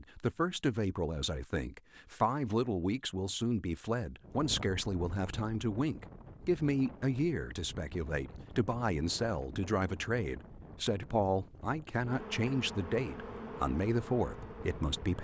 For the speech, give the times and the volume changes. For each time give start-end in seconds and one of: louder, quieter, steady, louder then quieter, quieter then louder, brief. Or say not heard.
0.0-15.1 steady.